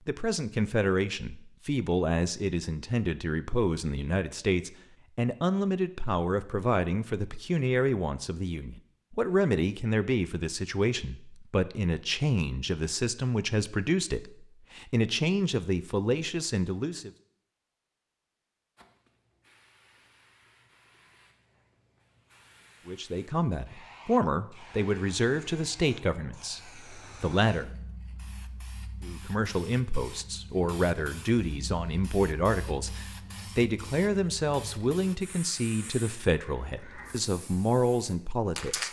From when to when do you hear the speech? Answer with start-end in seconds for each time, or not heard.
0.1-17.1, 22.9-27.7, 29.0-38.8.